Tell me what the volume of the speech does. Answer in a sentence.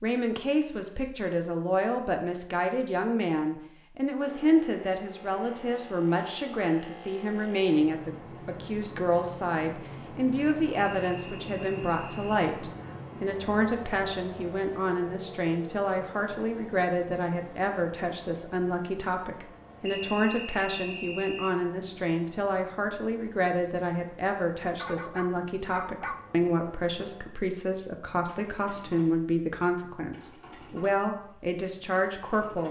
The volume of the speech stays about the same.